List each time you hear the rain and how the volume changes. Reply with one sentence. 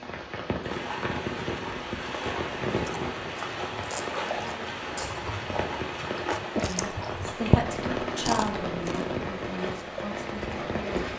The rain can be heard from 0.0 to 11.1 s, at a steady volume.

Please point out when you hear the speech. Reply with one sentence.
You can hear the speech from 6.7 to 11.1 s.